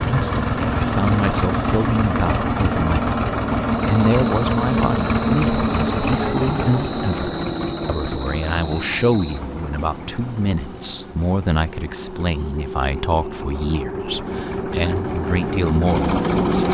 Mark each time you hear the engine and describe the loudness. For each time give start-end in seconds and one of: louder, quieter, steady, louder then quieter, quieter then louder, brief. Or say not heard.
0.0-16.6 quieter then louder.